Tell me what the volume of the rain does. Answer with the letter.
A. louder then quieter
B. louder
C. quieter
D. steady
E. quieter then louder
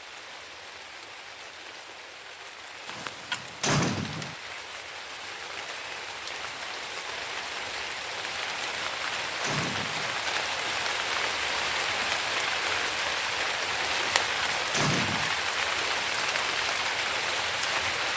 B.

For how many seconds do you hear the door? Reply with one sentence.
The door can be heard for 4 seconds in total.